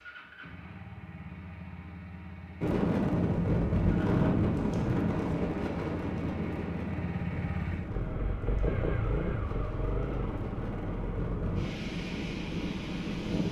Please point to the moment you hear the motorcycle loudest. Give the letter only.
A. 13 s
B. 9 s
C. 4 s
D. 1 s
B.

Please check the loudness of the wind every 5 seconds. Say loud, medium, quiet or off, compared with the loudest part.
loud, medium, medium.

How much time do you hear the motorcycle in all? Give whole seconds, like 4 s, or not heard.
12 s.